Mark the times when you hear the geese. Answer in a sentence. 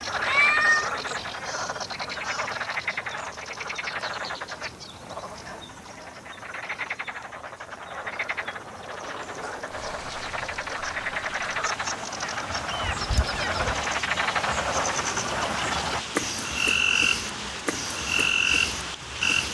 The geese can't be heard in this clip.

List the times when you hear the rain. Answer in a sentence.
You can hear the rain from 9.0 to 19.4 s.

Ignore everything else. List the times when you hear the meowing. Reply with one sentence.
You can hear the meowing from 0.2 to 0.9 s and from 12.8 to 13.8 s.